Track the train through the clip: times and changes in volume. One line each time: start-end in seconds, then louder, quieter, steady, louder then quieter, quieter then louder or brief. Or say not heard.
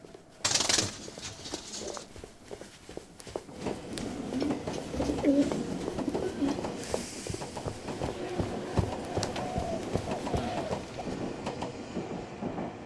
0.0-12.8 louder.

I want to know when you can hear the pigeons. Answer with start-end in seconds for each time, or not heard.
0.4-2.0, 4.3-6.6, 9.2-11.1.